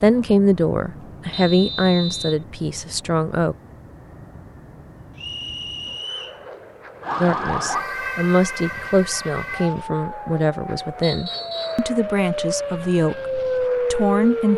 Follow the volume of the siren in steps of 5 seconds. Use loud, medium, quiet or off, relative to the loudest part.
off, loud, loud.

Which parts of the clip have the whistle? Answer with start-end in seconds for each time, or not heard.
1.3-2.4, 5.2-6.4, 11.0-11.8.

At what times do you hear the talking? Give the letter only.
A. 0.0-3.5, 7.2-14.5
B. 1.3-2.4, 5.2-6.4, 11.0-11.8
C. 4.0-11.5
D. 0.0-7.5
A.